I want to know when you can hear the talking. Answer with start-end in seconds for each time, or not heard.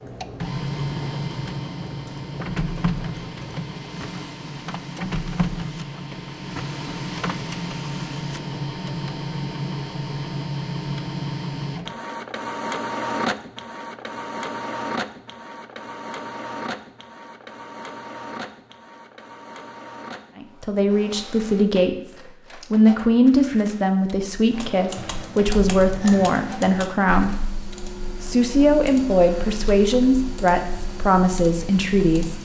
20.4-21.9, 22.7-27.4, 28.2-32.4.